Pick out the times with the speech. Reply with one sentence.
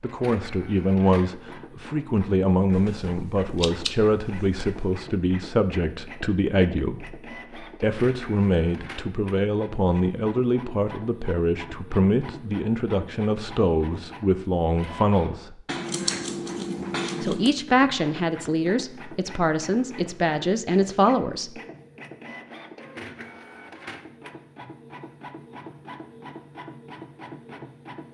The speech can be heard from 0.0 to 15.6 s and from 17.2 to 21.6 s.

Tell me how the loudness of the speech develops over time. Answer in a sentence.
The volume of the speech stays about the same.